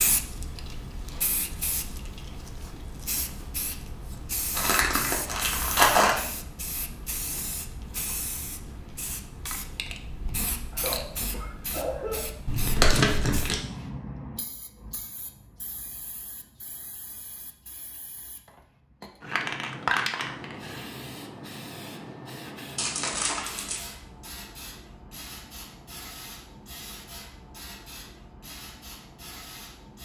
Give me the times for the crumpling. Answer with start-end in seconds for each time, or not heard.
4.5-6.2, 12.4-13.6, 22.8-23.9.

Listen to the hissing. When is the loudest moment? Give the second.
20 s.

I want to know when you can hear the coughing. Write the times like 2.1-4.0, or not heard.
10.7-12.2.